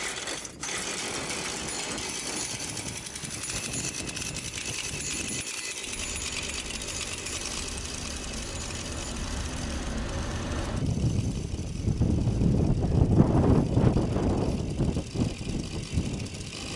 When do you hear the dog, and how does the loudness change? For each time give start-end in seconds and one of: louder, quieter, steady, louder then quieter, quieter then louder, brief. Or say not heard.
not heard.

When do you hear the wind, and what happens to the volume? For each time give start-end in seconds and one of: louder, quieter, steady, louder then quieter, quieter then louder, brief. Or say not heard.
0.0-16.7 louder.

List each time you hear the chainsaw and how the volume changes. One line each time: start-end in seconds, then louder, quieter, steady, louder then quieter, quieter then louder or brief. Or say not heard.
0.0-16.7 quieter.